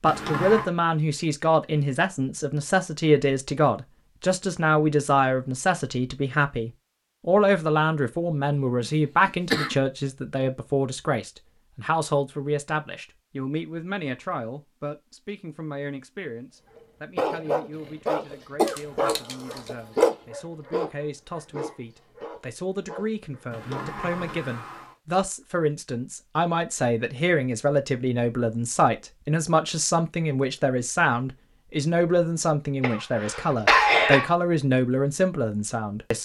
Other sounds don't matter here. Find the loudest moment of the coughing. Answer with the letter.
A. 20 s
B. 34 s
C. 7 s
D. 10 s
B.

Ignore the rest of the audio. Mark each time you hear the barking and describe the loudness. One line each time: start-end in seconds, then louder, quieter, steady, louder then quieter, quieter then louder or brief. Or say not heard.
17.1-23.9 quieter.